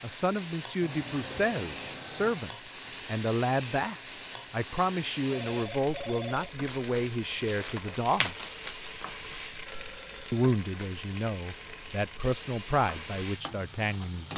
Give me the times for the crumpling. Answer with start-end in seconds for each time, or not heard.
6.7-9.2.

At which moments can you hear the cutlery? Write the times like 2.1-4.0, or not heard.
not heard.